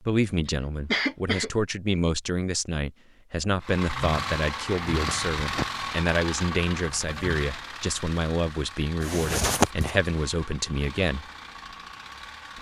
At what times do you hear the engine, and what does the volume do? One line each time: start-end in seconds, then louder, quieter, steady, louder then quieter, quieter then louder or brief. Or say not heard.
3.6-12.5 quieter.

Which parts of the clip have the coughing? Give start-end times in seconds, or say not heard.
0.5-1.5, 4.7-5.7, 9.0-9.9.